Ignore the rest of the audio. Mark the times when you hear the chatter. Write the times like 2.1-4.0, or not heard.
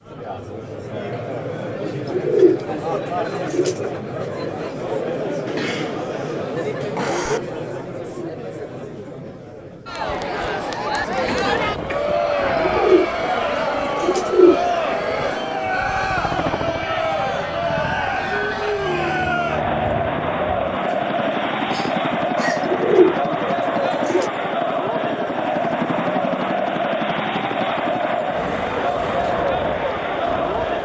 0.0-30.8.